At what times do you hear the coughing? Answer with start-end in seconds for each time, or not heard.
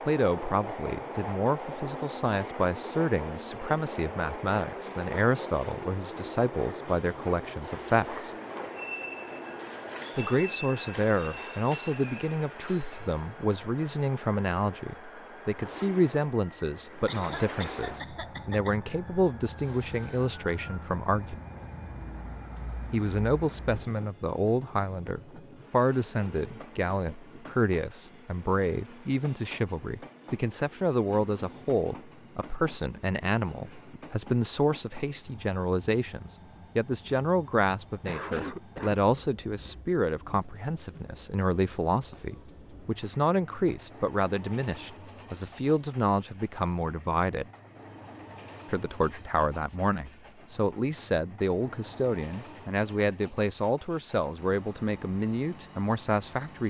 17.1-18.7, 38.0-39.0.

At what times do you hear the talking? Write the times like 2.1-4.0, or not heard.
0.1-8.3, 10.2-21.4, 22.9-47.5, 48.6-56.6.